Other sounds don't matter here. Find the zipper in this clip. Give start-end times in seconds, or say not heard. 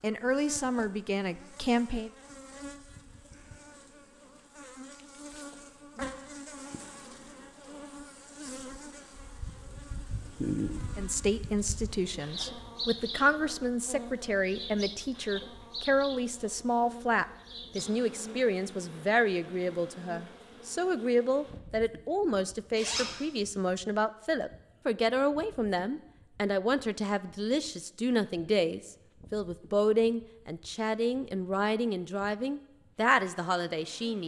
22.8-23.2.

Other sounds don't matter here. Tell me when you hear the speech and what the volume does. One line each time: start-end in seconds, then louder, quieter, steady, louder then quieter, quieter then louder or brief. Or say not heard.
0.0-2.1 brief
10.9-34.2 steady.